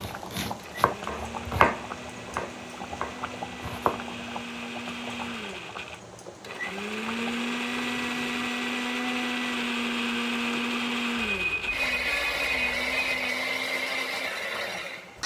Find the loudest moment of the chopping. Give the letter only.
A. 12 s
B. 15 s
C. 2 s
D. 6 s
C.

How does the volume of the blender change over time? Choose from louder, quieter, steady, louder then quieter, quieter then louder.
louder.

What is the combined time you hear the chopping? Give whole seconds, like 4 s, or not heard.
4 s.